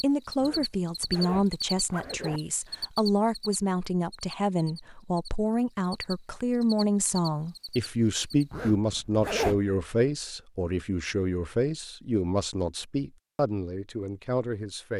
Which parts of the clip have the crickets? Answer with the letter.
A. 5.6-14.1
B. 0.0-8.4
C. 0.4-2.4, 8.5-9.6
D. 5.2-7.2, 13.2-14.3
B.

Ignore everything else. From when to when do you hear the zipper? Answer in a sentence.
The zipper can be heard from 0.4 to 2.4 s and from 8.5 to 9.6 s.